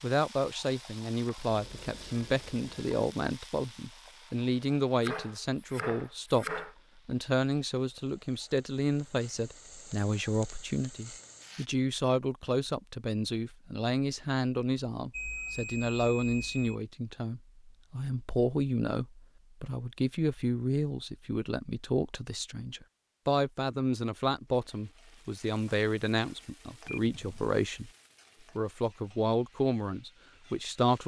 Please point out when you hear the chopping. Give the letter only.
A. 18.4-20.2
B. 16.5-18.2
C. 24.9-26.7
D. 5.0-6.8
D.